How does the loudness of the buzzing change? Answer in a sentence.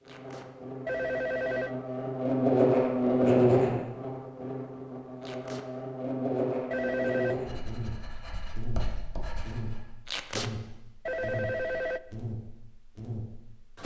The volume of the buzzing goes down.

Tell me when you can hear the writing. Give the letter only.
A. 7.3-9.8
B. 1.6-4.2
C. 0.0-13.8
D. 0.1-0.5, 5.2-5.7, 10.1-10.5
A.